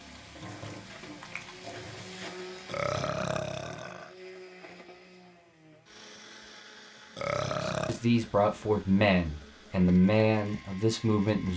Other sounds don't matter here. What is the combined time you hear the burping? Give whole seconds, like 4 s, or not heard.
2 s.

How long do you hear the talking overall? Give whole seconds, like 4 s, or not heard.
4 s.